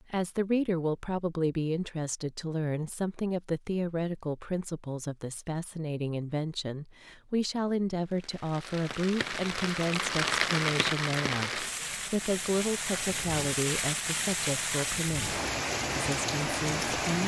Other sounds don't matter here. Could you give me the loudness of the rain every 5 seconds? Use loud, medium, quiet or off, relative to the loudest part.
off, medium, loud, loud.